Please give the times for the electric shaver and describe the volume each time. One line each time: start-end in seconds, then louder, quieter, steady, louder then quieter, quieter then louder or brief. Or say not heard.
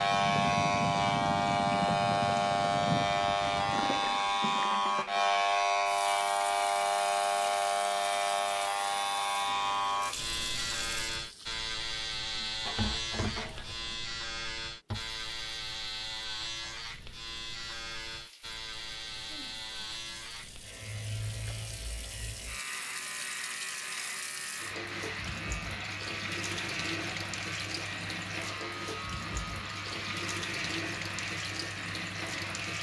0.0-32.7 quieter.